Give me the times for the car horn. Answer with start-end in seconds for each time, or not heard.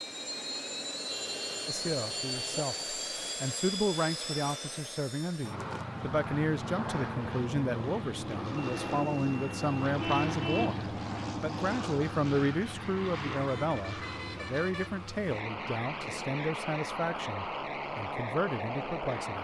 1.1-2.6, 10.0-10.8, 13.3-14.9.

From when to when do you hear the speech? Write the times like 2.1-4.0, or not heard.
1.6-19.3.